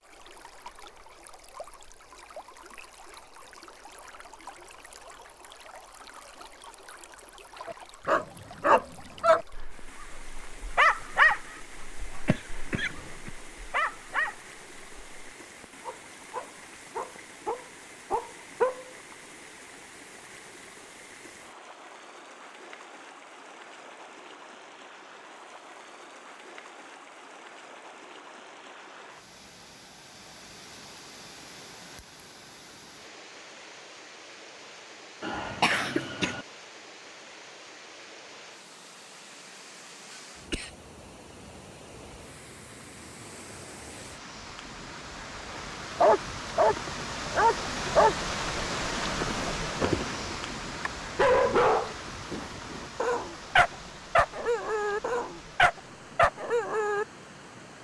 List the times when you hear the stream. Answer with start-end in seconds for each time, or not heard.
0.0-57.7.